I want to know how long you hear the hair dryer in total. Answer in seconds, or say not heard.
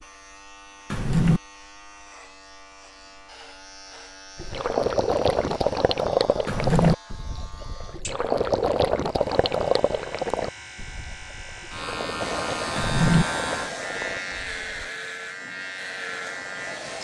5 s.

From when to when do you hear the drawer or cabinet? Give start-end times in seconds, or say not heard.
0.9-1.4, 6.5-7.0, 12.8-13.2.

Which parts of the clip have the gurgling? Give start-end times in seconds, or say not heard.
4.3-14.8.